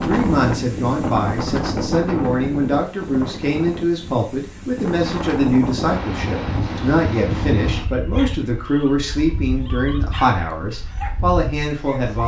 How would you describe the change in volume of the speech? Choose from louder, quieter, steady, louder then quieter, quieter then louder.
steady.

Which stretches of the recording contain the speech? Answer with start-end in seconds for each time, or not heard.
0.1-12.2.